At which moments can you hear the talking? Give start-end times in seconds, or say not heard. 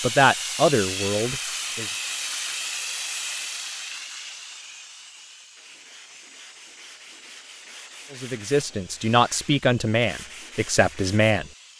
0.0-1.9, 8.1-11.7.